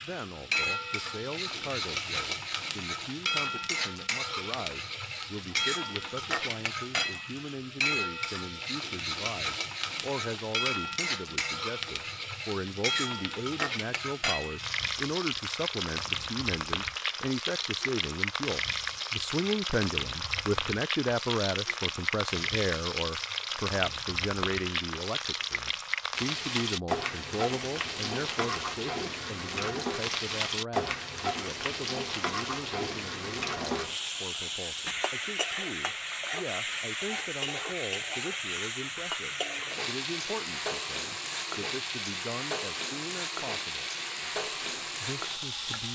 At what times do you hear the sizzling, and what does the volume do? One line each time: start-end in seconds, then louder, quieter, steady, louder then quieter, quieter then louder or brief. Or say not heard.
0.0-45.8 steady.